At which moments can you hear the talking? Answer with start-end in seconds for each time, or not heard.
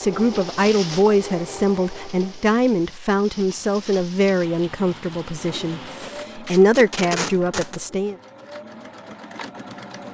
0.0-8.2.